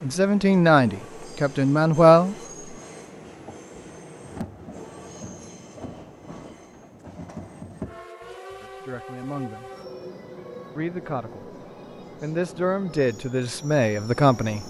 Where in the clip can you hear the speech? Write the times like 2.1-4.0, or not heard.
0.0-2.4, 8.6-9.7, 10.8-11.5, 12.2-14.6.